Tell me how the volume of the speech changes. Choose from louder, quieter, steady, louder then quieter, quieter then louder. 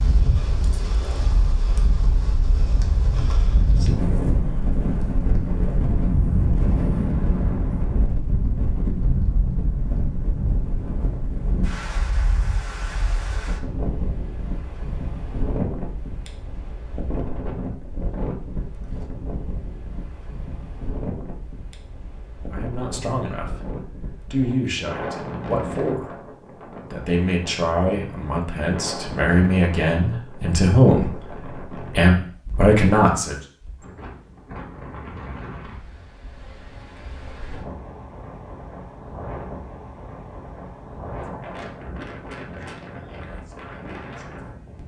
louder.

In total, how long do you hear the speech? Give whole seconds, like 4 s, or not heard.
10 s.